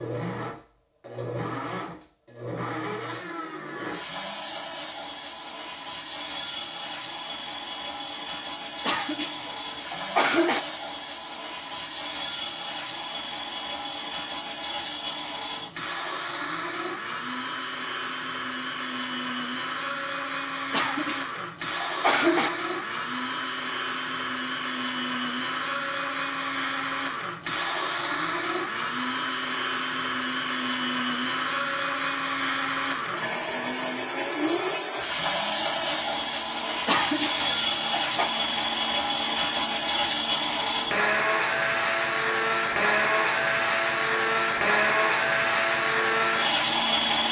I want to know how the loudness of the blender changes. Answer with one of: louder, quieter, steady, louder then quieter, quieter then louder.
louder.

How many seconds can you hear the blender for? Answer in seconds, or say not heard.
47 s.